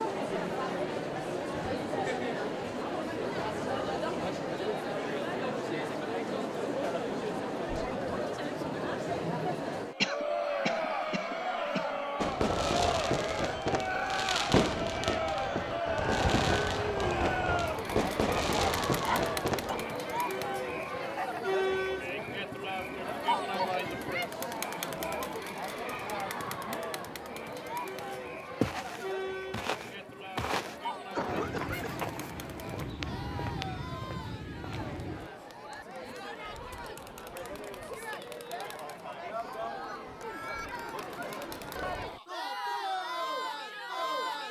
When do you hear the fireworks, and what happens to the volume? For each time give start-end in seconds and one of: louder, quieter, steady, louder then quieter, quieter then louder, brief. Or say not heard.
12.2-19.9 steady.